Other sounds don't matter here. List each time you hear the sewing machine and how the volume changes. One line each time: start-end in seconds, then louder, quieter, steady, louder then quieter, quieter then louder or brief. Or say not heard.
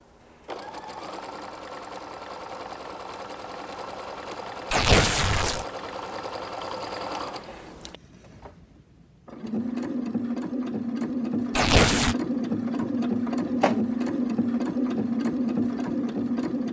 0.0-16.6 louder.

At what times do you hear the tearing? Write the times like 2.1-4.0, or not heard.
4.7-5.7, 11.6-12.2.